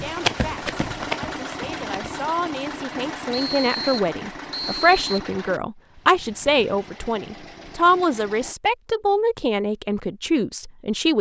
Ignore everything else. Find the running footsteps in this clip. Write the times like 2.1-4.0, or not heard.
0.0-2.1.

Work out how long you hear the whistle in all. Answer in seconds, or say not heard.
2 s.